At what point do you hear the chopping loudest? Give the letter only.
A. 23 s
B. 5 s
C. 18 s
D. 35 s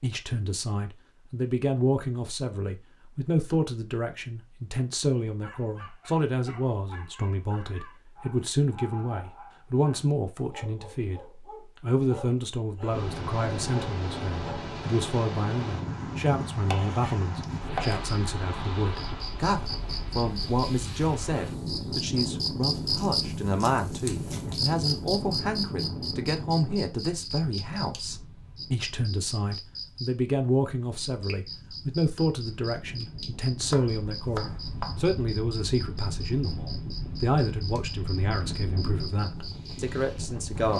C.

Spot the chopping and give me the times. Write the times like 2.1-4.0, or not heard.
16.6-18.0, 33.6-35.0.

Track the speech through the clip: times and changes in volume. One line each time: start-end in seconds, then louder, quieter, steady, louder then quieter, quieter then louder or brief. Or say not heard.
0.0-11.2 steady
11.8-40.7 steady.